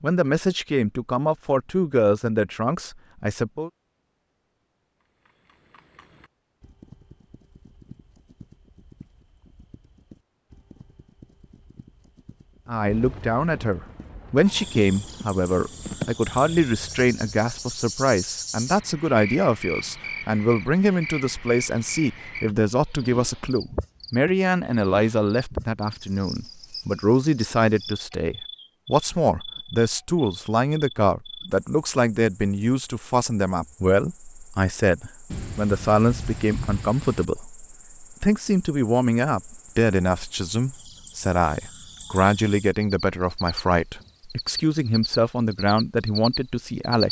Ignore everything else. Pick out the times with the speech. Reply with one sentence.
The speech can be heard from 0.0 to 3.7 s and from 12.7 to 47.0 s.